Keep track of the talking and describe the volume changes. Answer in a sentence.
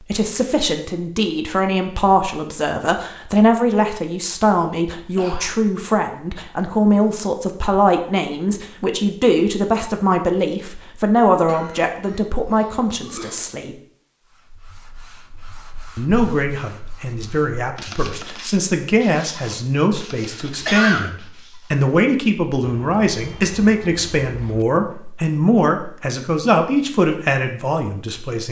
The loudness of the talking stays about the same.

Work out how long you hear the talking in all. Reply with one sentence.
The talking can be heard for 26 seconds in total.